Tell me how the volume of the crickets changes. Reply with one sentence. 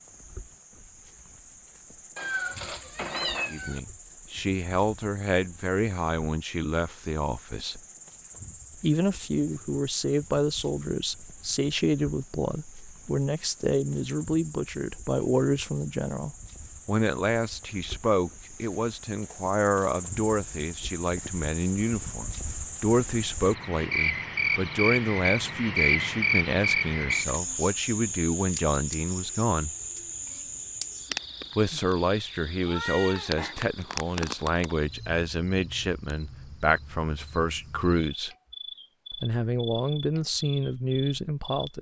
The loudness of the crickets goes up, then down.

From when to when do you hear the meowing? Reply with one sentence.
The meowing can be heard from 2.1 to 3.8 s and from 32.6 to 33.5 s.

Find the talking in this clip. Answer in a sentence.
The talking can be heard from 3.5 to 7.8 s, from 8.8 to 29.7 s, from 31.6 to 38.4 s and from 39.1 to 41.7 s.